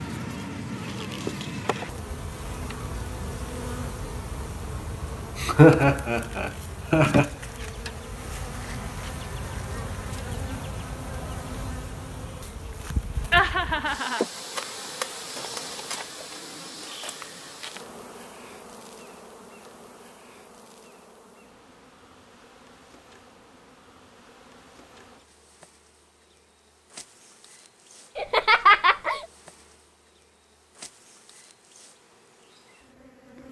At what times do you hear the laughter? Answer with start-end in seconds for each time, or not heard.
5.3-7.3, 13.3-14.7, 28.1-29.2.